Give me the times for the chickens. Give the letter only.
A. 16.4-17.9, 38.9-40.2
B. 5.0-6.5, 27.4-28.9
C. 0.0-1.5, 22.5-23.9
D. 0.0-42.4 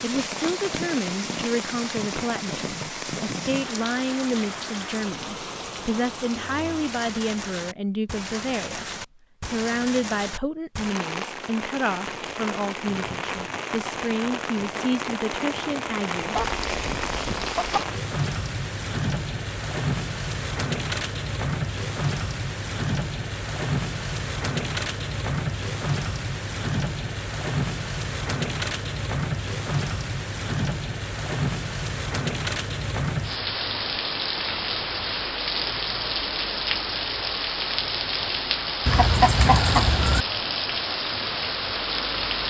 A.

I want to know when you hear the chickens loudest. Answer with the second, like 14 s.
39 s.